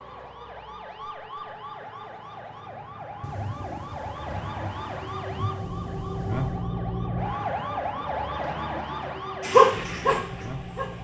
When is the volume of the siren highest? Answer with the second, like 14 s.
7 s.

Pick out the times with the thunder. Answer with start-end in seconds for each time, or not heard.
3.2-6.7.